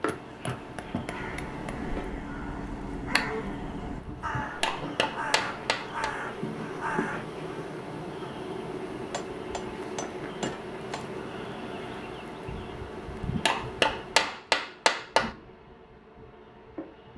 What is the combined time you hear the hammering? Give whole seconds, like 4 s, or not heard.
7 s.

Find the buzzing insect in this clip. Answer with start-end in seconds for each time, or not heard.
0.0-17.1.